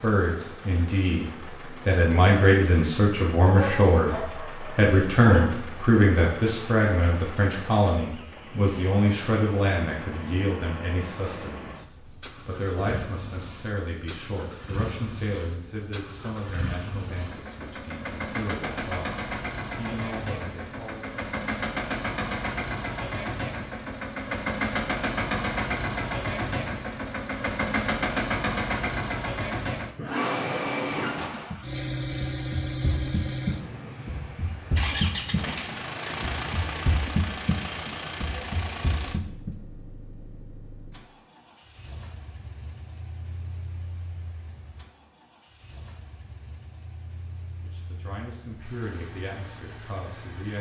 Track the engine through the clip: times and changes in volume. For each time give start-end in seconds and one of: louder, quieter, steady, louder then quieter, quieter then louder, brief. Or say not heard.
0.0-50.5 louder then quieter.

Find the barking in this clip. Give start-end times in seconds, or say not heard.
3.5-5.5.